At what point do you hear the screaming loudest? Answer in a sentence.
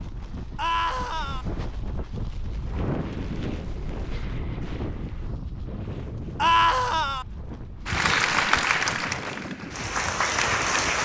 The volume of the screaming peaks at 7 seconds.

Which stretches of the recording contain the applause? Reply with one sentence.
The applause can be heard from 7.8 to 11.0 s.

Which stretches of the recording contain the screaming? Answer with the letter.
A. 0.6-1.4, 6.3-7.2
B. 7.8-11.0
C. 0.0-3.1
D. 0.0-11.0
A.